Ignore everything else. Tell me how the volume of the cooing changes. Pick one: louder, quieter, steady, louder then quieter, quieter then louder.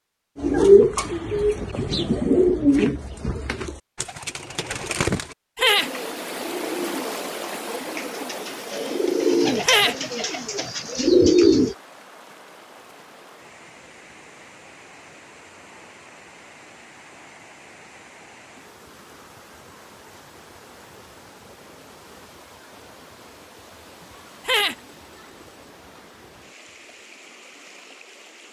quieter then louder.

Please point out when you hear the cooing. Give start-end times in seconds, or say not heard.
0.3-11.8.